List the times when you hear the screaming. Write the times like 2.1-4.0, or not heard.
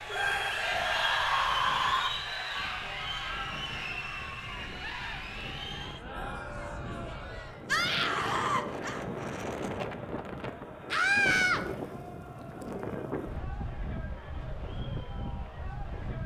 0.1-2.1, 7.7-9.0, 10.9-11.7.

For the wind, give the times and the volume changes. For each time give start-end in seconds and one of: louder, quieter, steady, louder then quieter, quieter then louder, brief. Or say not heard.
0.1-16.2 louder.